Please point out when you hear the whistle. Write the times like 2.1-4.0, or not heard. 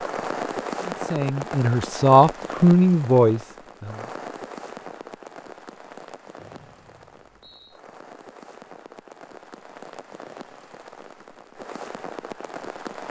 6.3-7.8.